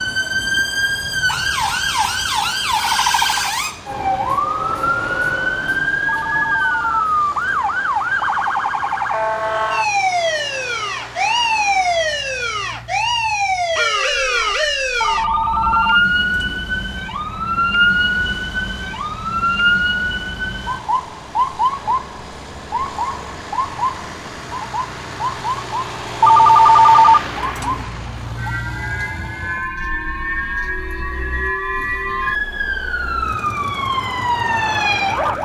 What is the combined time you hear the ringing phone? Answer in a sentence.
The ringing phone can be heard for 5 seconds in total.